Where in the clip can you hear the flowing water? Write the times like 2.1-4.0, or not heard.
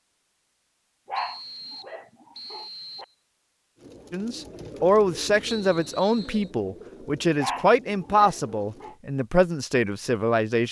not heard.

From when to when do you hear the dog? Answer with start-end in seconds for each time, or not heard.
1.1-3.0, 7.3-8.9.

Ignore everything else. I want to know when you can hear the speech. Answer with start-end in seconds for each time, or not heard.
4.1-10.6.